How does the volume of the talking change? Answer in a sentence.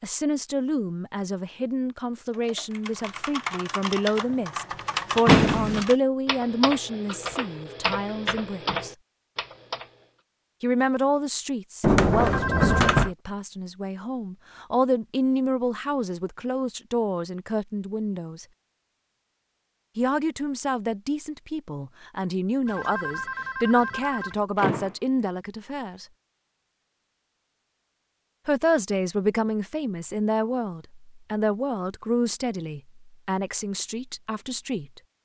The volume of the talking stays about the same.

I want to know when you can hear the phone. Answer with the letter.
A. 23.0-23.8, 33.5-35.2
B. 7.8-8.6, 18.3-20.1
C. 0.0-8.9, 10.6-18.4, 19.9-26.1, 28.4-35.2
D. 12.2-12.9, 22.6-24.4
D.